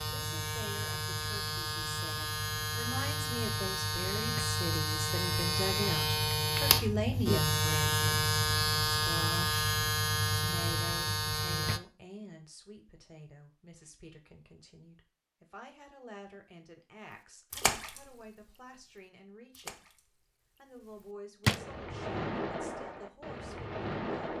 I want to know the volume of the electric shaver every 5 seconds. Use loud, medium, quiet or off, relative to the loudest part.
medium, loud, loud, off, off.